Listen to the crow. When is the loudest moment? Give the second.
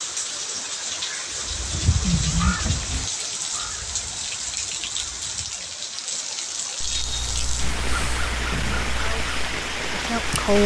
2 s.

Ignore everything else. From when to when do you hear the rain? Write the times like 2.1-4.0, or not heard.
0.0-10.6.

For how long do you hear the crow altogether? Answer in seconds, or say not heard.
8 s.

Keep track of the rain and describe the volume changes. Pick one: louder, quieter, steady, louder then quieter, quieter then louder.
steady.